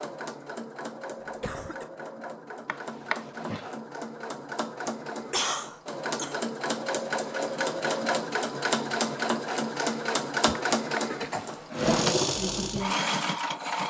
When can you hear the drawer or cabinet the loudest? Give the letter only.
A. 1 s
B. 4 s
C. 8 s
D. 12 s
D.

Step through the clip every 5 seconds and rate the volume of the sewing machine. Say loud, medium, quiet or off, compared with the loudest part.
medium, loud, loud.